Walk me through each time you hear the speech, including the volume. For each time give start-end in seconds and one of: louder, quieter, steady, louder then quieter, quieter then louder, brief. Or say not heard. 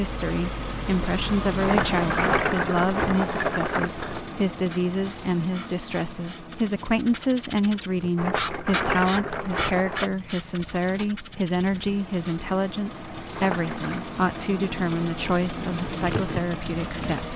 0.0-17.3 steady.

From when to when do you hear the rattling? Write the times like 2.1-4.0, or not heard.
1.6-4.2, 8.2-10.1, 13.3-14.1.